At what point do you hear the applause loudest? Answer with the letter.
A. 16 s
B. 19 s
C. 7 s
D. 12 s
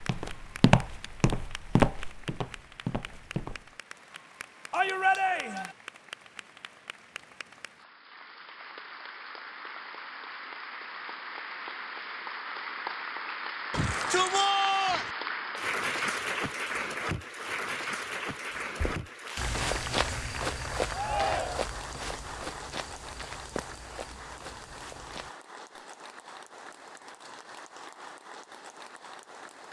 A.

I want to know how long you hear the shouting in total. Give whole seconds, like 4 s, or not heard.
3 s.